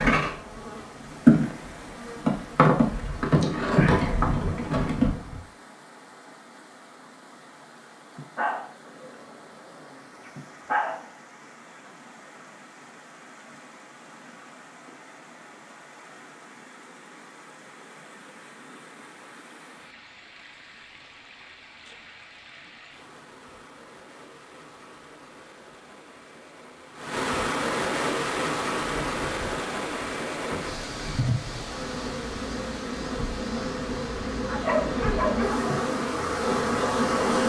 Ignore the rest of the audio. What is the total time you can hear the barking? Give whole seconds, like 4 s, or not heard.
4 s.